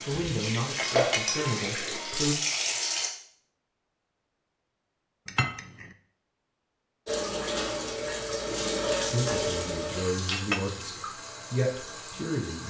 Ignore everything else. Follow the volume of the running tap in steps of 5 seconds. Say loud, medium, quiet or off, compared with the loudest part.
loud, loud, medium.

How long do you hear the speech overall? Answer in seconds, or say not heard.
6 s.